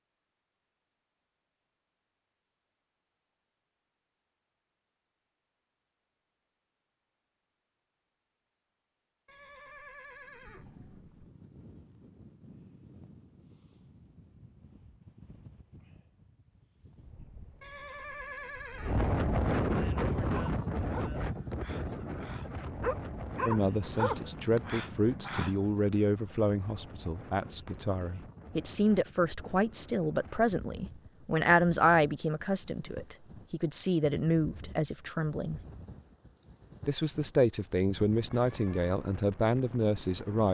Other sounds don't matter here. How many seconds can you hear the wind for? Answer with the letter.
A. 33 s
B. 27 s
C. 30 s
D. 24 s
C.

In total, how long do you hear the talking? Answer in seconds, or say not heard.
16 s.